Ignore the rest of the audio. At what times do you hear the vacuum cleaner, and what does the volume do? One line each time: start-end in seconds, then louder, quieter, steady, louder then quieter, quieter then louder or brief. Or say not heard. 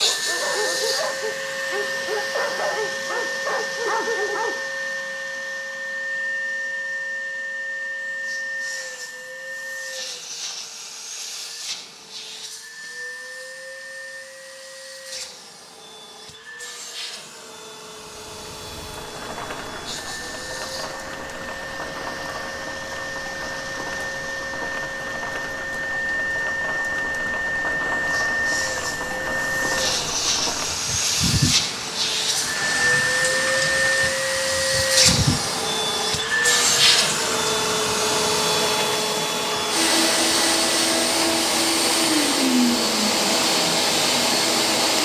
0.0-45.0 quieter then louder.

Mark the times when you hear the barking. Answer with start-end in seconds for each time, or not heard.
0.0-4.5.